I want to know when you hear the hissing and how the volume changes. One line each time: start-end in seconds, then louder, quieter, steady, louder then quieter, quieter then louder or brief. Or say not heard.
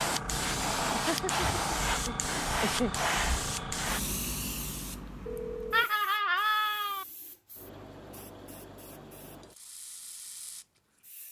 0.0-11.2 quieter.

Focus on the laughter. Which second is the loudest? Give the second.
6 s.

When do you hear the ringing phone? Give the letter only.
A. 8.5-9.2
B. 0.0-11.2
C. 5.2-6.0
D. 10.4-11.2
C.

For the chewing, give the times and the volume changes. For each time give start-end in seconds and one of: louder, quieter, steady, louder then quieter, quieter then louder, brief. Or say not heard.
not heard.